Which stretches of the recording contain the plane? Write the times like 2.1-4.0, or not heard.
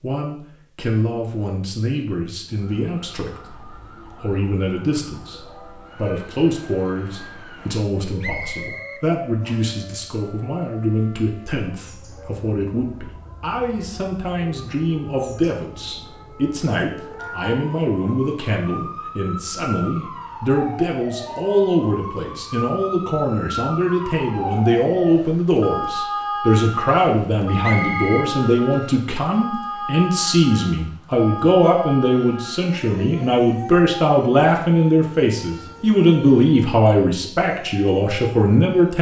not heard.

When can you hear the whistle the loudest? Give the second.
28 s.